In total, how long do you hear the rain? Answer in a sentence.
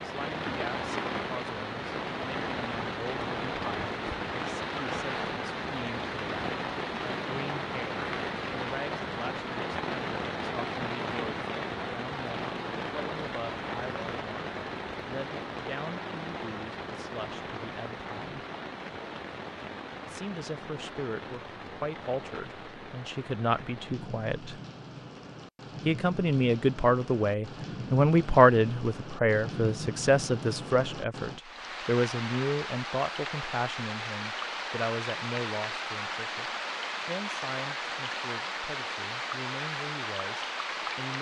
The rain can be heard for 41 seconds in total.